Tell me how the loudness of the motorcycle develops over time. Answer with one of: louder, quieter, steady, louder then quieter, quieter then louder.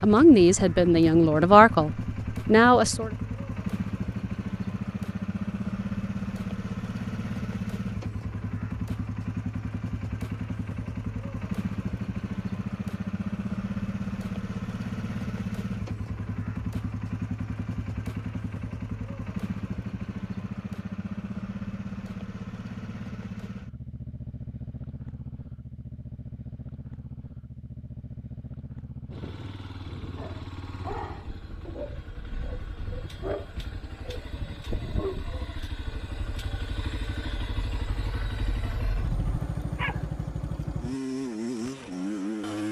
quieter then louder.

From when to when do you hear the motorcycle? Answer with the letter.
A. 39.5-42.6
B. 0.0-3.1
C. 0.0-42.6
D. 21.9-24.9
C.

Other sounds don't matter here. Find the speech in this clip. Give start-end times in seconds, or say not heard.
0.0-3.1.